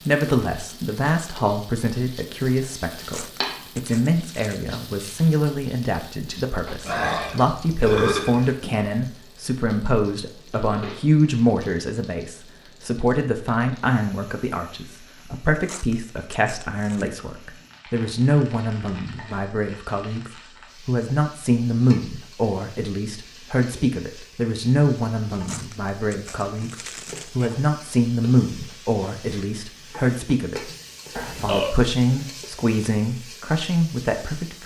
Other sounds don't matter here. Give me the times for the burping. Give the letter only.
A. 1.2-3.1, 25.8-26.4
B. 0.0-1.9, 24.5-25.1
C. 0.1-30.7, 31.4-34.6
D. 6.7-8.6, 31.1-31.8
D.